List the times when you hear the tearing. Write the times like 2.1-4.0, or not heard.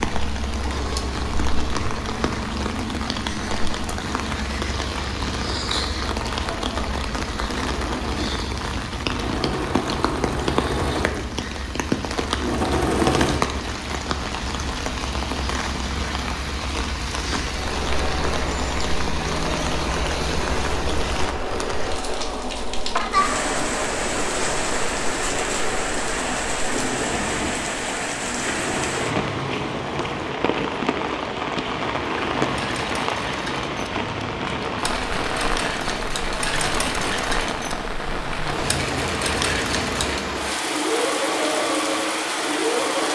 not heard.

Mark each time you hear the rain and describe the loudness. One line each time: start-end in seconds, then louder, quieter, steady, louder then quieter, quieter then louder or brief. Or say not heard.
0.0-43.1 steady.